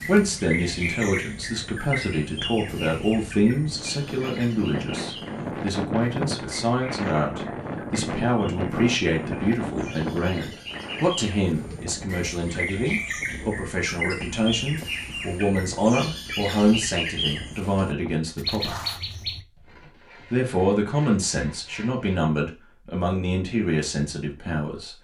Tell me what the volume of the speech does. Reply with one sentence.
The volume of the speech stays about the same.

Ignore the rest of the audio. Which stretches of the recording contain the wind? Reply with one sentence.
The wind can be heard from 0.0 to 18.1 s.